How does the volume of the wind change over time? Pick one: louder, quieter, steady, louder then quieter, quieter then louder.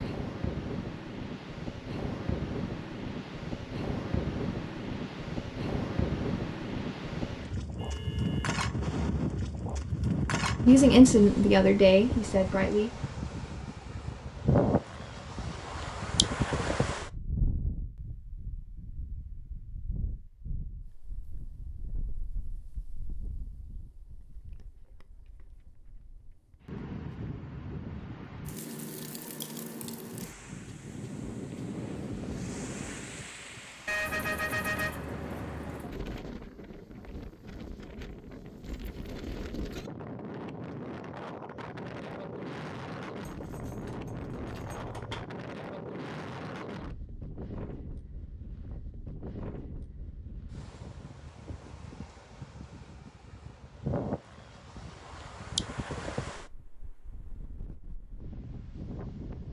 quieter.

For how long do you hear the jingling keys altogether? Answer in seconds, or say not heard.
2 s.